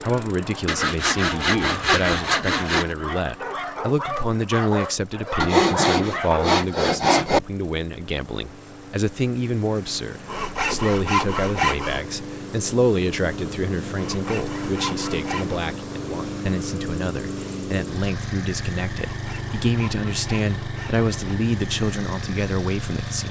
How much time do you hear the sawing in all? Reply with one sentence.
You can hear the sawing for 10 seconds altogether.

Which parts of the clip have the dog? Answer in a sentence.
You can hear the dog from 0.0 to 6.6 s.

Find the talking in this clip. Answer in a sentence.
You can hear the talking from 0.0 to 23.2 s.